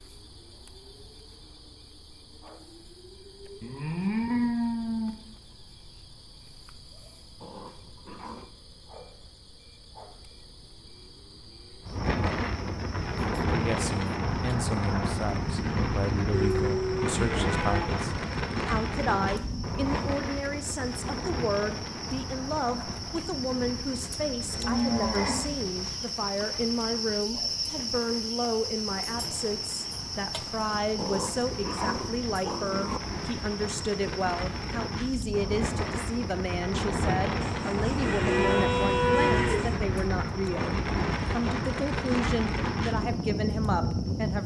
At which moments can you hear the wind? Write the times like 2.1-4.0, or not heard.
11.8-44.4.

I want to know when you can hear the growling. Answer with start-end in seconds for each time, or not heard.
7.4-8.5, 19.2-20.1, 30.9-33.0.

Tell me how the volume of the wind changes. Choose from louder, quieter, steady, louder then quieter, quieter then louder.
quieter then louder.